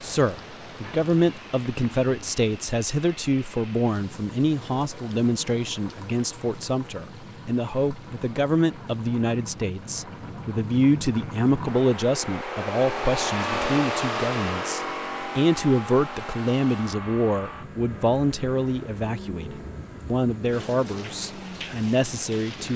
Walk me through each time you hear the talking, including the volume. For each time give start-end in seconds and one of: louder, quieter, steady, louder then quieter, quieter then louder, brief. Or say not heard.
0.0-22.7 steady.